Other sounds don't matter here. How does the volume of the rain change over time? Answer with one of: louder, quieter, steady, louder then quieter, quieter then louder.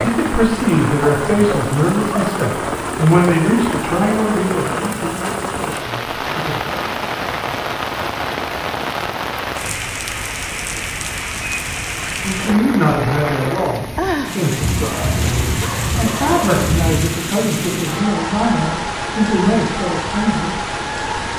steady.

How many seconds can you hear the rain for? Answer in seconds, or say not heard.
21 s.